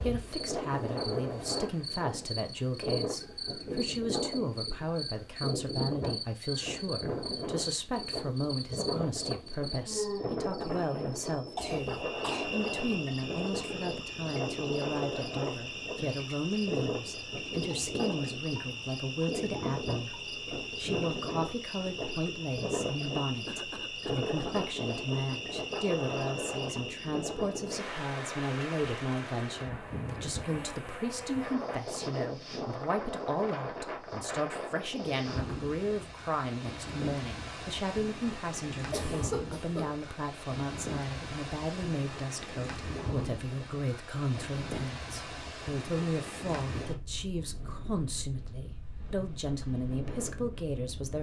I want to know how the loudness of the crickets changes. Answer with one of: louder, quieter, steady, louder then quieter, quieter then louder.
steady.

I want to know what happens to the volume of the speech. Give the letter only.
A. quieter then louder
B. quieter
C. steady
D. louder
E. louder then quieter
C.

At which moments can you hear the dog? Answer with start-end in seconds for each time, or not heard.
not heard.